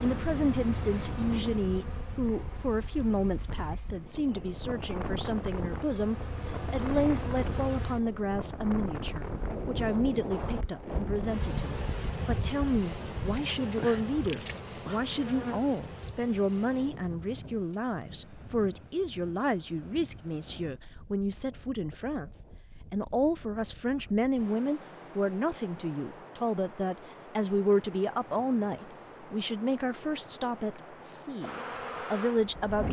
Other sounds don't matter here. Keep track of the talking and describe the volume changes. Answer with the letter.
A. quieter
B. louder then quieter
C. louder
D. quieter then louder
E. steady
E.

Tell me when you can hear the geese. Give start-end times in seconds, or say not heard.
not heard.